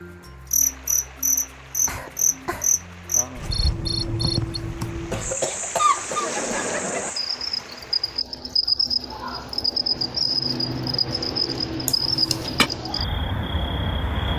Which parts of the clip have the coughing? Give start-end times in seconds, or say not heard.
1.9-2.7, 5.1-7.1, 11.8-12.7.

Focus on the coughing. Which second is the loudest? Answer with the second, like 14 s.
6 s.